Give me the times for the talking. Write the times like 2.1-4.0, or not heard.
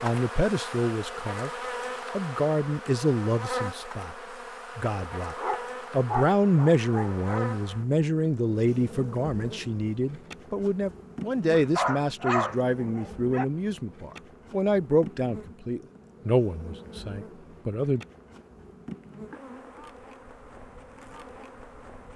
0.0-1.5, 2.1-4.2, 4.8-18.0.